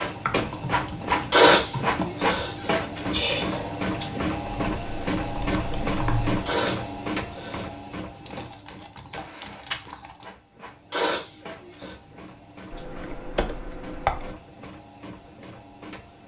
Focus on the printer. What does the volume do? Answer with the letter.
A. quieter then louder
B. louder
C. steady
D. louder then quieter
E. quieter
E.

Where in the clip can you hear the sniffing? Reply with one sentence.
You can hear the sniffing from 1.3 to 3.7 s, from 6.5 to 7.8 s and from 10.9 to 11.9 s.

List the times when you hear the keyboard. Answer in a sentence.
The keyboard can be heard from 0.1 to 2.2 s, from 4.4 to 6.4 s, from 8.2 to 10.2 s and from 12.7 to 14.3 s.